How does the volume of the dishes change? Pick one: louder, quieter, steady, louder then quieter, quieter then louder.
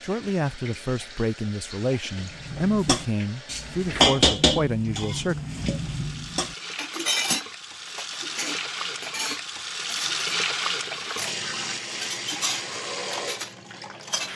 quieter.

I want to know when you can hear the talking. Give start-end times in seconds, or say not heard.
0.0-5.4.